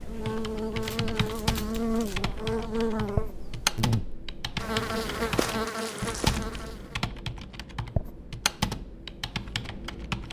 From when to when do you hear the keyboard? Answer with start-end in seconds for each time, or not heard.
0.0-10.2.